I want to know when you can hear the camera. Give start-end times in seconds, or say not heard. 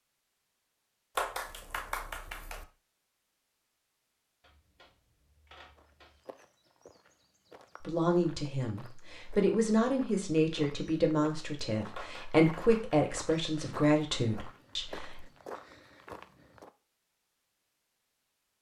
4.4-6.2.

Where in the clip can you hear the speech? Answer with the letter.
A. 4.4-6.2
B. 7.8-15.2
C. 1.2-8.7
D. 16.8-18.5
B.